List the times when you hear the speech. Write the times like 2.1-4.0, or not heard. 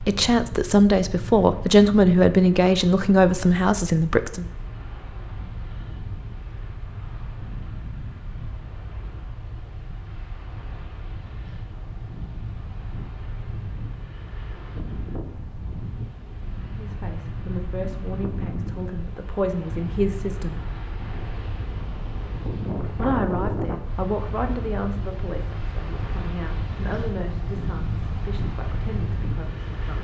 0.0-4.5, 16.6-20.6, 23.0-29.9.